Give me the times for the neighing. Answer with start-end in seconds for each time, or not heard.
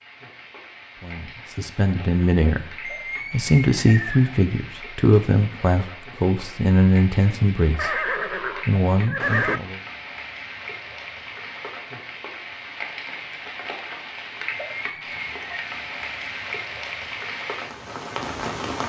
2.8-4.4, 7.8-9.6, 14.7-15.7.